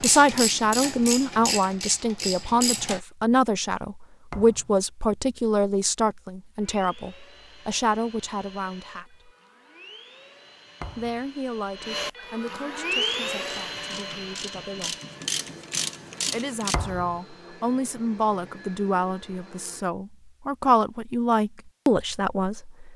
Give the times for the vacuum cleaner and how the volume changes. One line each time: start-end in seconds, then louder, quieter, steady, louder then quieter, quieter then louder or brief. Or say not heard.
6.5-19.9 louder then quieter.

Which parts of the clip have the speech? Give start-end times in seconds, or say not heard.
0.0-9.3, 10.9-14.9, 16.3-22.9.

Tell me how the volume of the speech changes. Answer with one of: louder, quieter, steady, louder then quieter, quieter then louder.
quieter then louder.